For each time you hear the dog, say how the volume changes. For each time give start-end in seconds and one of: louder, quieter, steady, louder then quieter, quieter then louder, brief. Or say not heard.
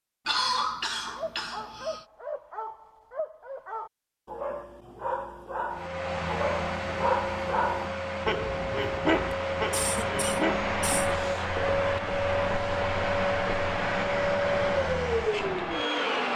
1.1-10.7 louder.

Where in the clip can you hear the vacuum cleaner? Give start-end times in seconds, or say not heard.
5.7-16.3.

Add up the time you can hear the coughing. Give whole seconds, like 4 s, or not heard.
3 s.